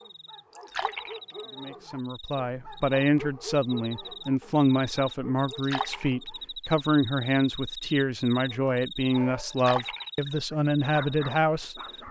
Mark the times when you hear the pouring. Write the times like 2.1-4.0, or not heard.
0.6-1.4, 5.5-6.4, 9.4-10.3.